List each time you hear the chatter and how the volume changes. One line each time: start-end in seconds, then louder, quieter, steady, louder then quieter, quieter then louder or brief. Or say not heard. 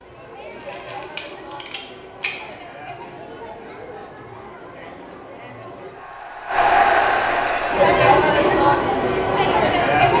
0.0-10.1 louder.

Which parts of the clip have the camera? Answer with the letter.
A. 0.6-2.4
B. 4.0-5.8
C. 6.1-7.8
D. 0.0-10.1
A.